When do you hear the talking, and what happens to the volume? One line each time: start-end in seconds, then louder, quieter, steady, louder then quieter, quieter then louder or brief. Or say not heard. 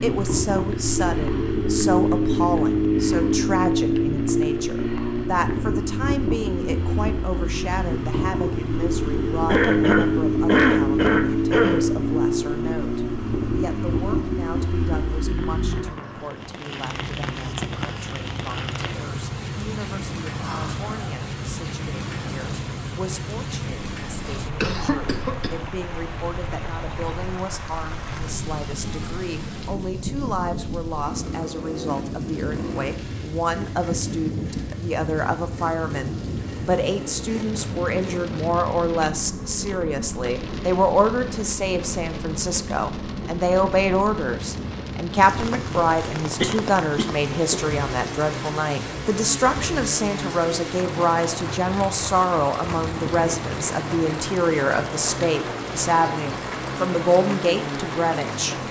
0.0-58.5 quieter then louder.